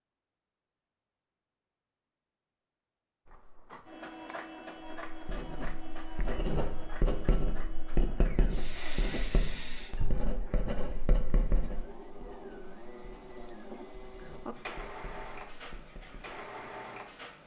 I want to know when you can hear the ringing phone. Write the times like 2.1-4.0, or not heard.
not heard.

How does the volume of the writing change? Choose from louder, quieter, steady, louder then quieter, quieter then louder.
quieter.